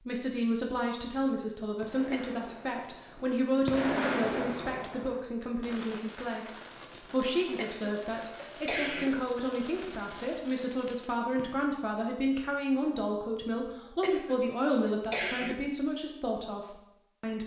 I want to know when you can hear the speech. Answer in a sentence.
You can hear the speech from 0.1 to 17.4 s.